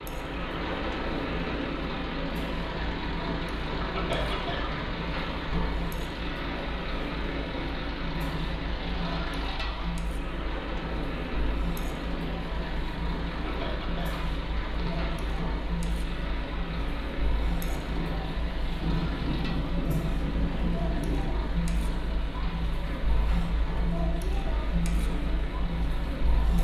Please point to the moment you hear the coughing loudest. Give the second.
4 s.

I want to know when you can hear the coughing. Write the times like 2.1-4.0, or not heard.
3.8-4.9, 13.3-15.1.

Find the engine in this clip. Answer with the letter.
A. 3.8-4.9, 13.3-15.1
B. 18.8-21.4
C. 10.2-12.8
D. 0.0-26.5
D.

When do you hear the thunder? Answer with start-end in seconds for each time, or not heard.
18.8-21.4.